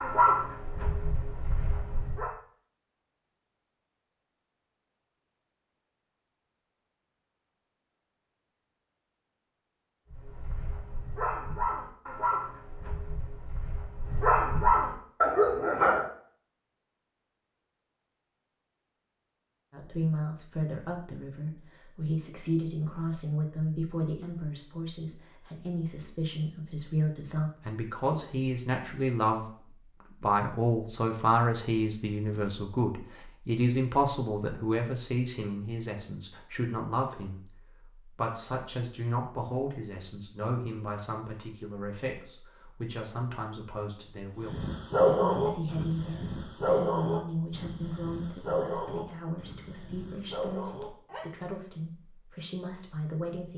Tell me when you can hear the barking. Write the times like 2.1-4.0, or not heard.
0.0-2.3, 10.1-16.1, 44.4-51.4.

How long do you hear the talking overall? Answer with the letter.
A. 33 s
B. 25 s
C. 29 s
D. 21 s
A.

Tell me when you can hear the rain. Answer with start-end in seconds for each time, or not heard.
not heard.